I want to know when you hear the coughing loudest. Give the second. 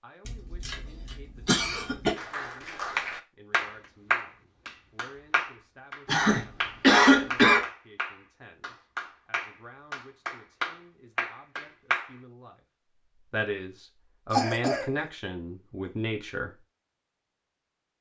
7 s.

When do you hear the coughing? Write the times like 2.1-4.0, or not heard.
0.2-2.1, 6.0-7.7, 14.3-14.8.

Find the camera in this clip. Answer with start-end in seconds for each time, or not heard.
not heard.